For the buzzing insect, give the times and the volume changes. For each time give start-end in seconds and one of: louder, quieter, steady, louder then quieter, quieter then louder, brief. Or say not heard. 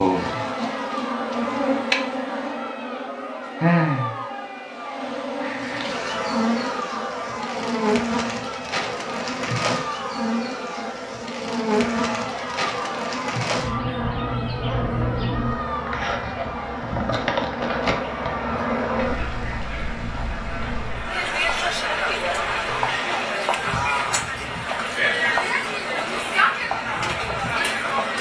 0.0-28.1 quieter.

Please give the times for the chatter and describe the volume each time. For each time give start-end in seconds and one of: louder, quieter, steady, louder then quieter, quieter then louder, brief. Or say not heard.
0.0-28.1 louder.